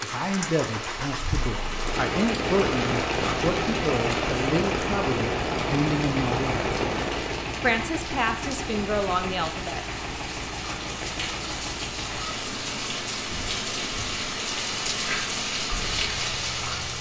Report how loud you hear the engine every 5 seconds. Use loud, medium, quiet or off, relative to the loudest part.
loud, loud, medium, medium.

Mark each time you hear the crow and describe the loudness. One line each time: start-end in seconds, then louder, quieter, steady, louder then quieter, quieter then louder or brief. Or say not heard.
not heard.